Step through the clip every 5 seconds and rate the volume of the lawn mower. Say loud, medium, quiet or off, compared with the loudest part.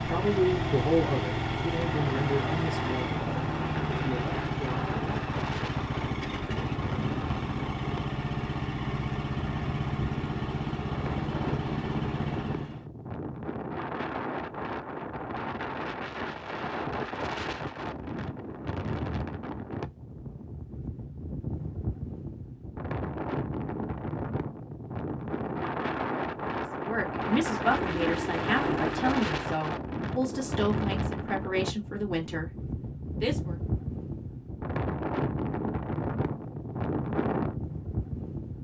loud, loud, loud, off, off, loud, off, off.